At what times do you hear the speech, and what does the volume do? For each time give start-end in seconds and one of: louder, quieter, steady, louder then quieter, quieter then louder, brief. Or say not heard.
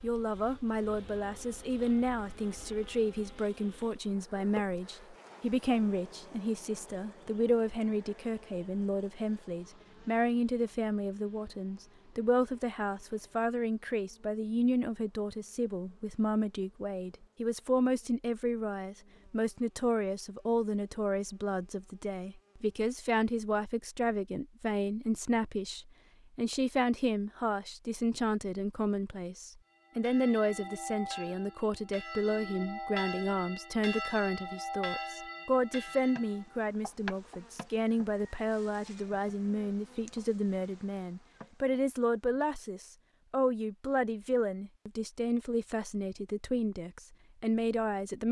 0.0-48.2 steady.